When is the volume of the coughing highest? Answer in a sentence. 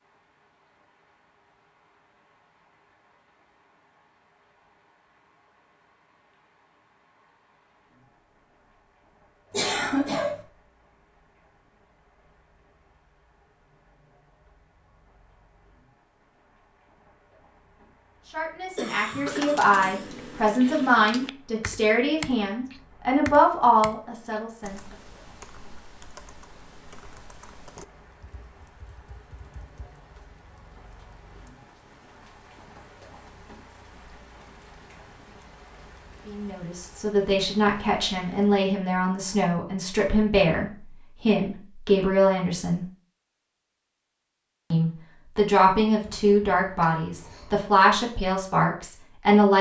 The loudest moment of the coughing is at 10 seconds.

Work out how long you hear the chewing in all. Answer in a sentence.
The chewing can't be heard in this clip.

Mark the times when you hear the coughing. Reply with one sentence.
You can hear the coughing from 9.5 to 10.4 s, from 18.8 to 20.1 s and from 46.0 to 47.7 s.